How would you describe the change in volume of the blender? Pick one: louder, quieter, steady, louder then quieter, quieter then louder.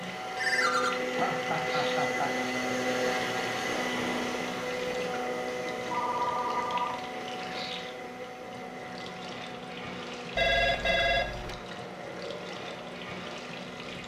quieter.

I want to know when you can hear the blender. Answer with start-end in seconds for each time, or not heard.
0.0-14.0.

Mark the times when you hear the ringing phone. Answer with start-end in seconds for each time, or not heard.
0.3-0.9, 5.9-7.0, 10.3-11.6.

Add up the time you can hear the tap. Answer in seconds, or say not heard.
14 s.